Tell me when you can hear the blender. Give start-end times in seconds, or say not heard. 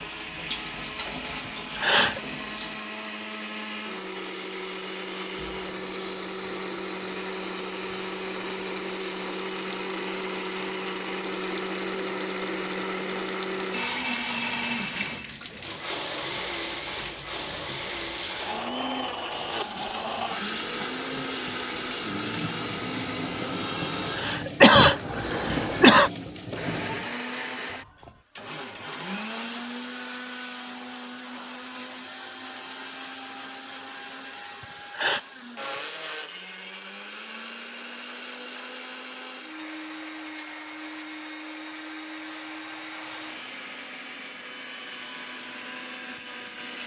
0.0-46.8.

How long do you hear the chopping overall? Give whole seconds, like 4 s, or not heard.
not heard.